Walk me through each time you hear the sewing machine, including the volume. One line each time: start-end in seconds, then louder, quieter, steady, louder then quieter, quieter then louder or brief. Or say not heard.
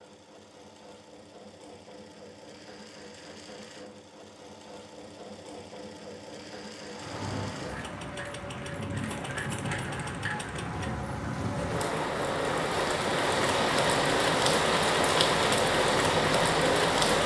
0.0-17.2 louder.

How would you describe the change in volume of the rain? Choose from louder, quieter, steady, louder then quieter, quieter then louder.
louder.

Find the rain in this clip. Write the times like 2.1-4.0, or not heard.
6.9-17.2.